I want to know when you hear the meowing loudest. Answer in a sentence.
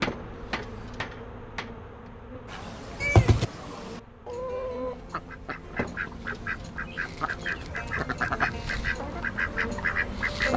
The loudest moment of the meowing is at 3 seconds.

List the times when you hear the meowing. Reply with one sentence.
You can hear the meowing from 3.0 to 3.5 s and from 7.6 to 9.0 s.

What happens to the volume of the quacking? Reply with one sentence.
The loudness of the quacking goes up.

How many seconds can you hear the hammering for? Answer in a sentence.
The hammering can be heard for 2 seconds in total.